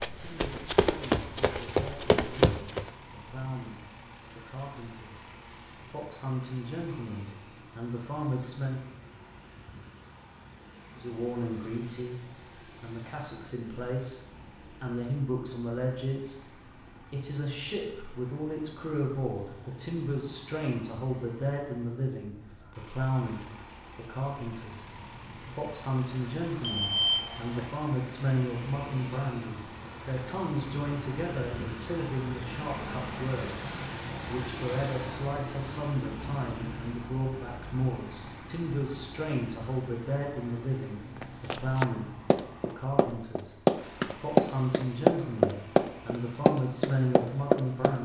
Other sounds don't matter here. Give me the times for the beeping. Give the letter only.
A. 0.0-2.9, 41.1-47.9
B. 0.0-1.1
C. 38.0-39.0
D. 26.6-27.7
D.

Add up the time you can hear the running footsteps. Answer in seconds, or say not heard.
10 s.